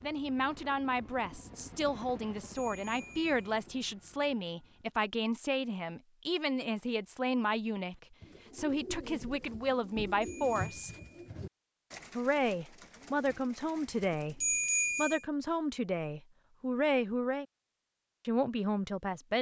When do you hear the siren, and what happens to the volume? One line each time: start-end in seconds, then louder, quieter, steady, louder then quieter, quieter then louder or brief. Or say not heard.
not heard.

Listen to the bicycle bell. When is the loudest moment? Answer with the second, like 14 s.
15 s.